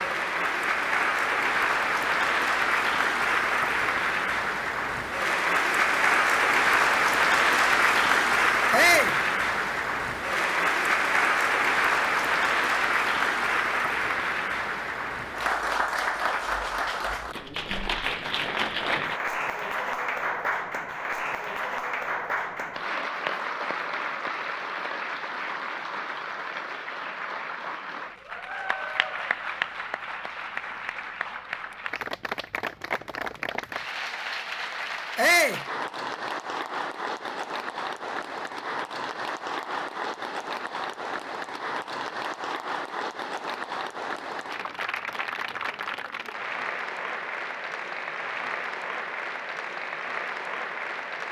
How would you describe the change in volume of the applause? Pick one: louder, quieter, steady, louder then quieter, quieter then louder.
quieter.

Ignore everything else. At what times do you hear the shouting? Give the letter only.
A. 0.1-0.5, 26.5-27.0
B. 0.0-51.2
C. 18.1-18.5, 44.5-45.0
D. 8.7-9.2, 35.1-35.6
D.